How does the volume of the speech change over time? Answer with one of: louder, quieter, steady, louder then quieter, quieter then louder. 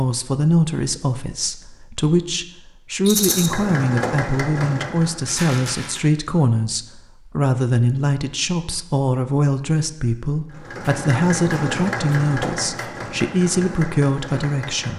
steady.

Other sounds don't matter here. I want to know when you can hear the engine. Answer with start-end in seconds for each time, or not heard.
3.2-5.3, 10.5-14.9.